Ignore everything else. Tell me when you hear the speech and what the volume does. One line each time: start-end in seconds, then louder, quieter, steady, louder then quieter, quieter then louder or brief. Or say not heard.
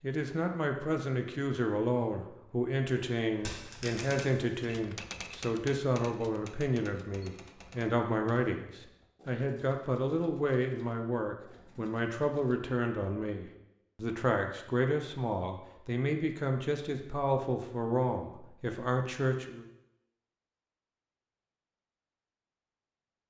0.0-19.6 steady.